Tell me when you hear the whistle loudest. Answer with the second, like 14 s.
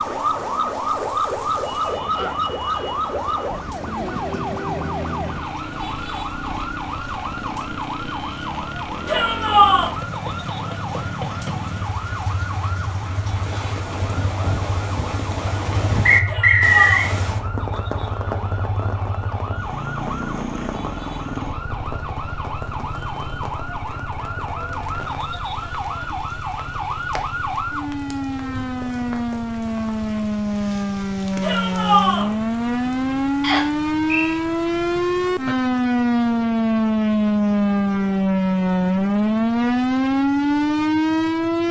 17 s.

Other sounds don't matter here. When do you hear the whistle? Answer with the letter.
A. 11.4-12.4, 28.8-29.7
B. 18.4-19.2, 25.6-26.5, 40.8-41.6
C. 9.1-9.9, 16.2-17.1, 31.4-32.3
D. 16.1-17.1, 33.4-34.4
D.